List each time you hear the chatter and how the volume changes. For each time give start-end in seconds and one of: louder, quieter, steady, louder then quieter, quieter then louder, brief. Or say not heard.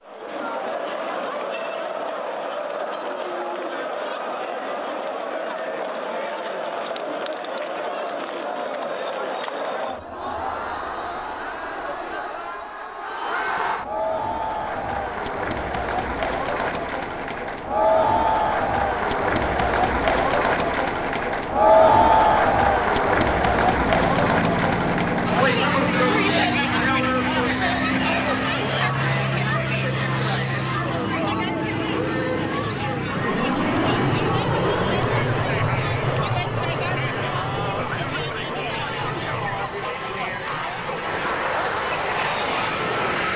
0.0-43.3 louder then quieter.